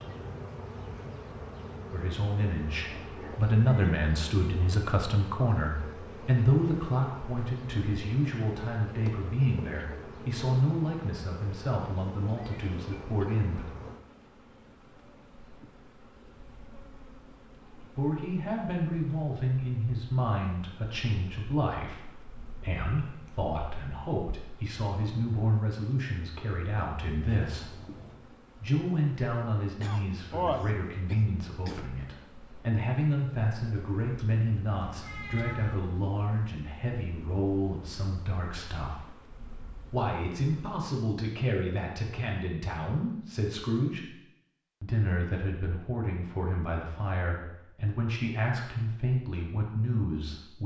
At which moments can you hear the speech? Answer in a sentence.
The speech can be heard from 1.9 to 13.7 s, from 17.8 to 27.7 s, from 28.6 to 39.1 s, from 39.9 to 44.0 s and from 44.8 to 50.6 s.